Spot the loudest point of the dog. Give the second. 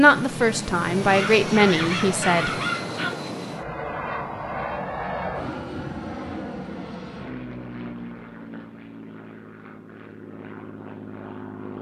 3 s.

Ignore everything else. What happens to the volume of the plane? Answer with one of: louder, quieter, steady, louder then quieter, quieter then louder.
quieter.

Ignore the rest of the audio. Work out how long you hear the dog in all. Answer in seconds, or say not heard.
2 s.